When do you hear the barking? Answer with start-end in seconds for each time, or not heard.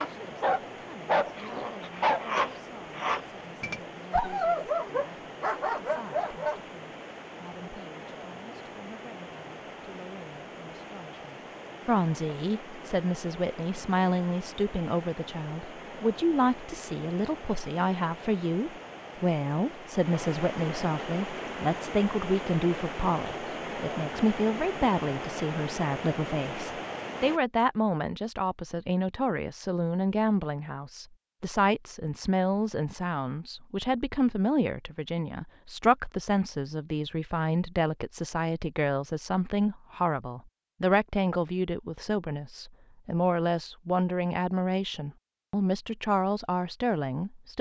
0.0-6.6.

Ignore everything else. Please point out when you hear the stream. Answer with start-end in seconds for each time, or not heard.
0.0-27.4.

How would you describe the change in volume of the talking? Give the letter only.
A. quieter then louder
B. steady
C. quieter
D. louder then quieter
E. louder
E.